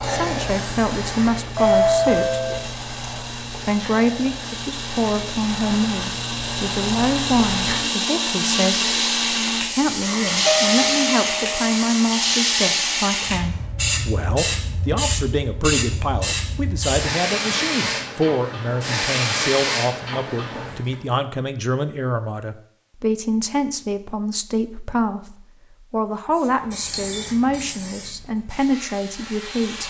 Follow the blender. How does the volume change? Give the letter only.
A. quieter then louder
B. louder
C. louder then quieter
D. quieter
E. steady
C.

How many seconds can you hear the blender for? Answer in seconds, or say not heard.
14 s.